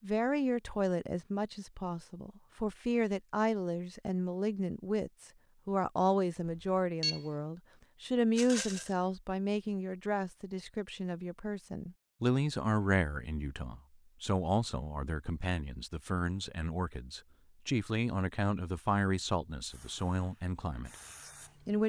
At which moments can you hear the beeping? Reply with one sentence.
The beeping can be heard from 6.5 to 7.2 s.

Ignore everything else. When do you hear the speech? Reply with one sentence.
You can hear the speech from 0.0 to 21.8 s.